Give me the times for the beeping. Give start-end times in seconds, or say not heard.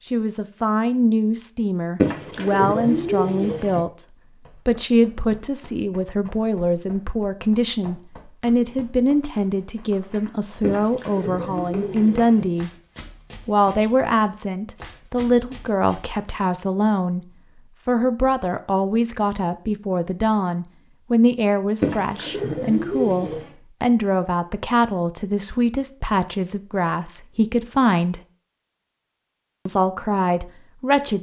not heard.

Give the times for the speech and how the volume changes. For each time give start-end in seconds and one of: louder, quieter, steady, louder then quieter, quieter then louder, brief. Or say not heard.
0.1-12.7 steady
13.4-28.2 steady
29.6-31.1 brief.